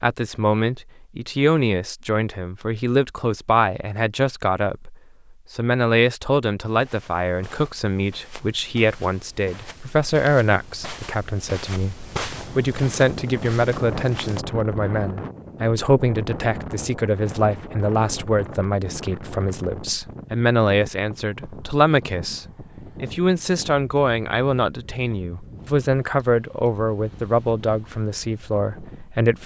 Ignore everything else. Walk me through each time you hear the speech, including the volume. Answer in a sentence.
You can hear the speech from 0.0 to 29.4 s, at a steady volume.